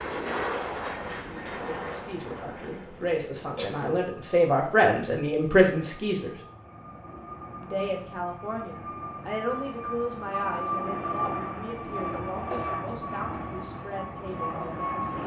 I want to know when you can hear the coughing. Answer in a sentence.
The coughing can be heard from 3.5 to 4.0 s and from 12.5 to 13.1 s.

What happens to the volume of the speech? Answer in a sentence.
The volume of the speech goes up, then down.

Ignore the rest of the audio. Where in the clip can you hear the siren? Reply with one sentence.
The siren can't be heard in this clip.